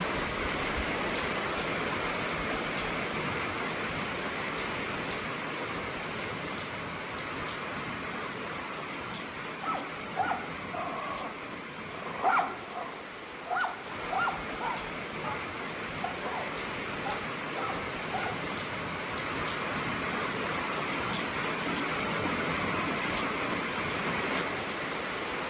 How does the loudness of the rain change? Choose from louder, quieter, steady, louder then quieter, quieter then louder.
quieter then louder.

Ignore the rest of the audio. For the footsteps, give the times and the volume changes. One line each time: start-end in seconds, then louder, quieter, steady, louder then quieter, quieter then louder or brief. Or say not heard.
not heard.